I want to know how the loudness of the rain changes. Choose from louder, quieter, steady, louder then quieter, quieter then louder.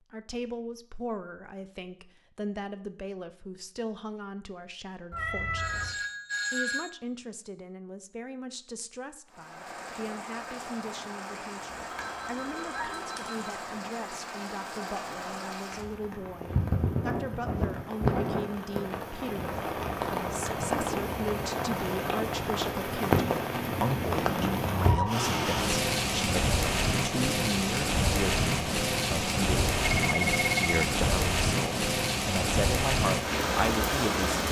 louder.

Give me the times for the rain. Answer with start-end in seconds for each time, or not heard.
9.2-34.4.